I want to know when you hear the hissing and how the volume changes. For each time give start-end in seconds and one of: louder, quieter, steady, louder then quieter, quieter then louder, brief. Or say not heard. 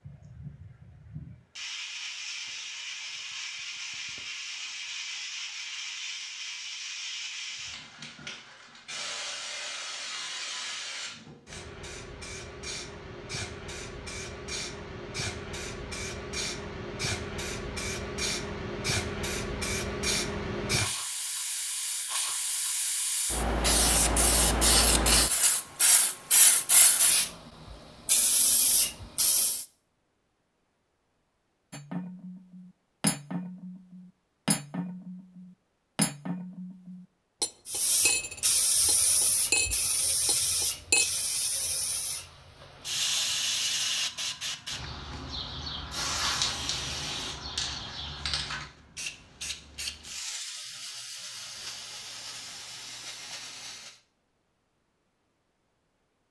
0.1-29.6 louder
37.6-54.0 quieter.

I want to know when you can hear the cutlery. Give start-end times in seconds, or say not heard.
31.7-41.0.